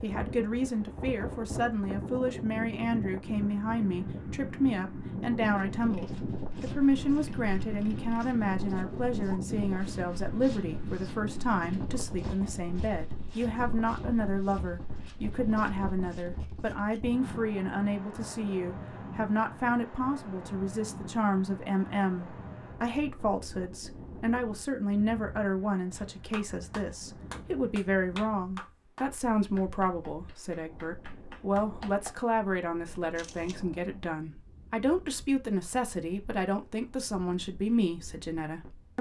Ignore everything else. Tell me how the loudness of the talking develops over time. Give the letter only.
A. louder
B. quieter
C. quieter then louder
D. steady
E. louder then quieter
D.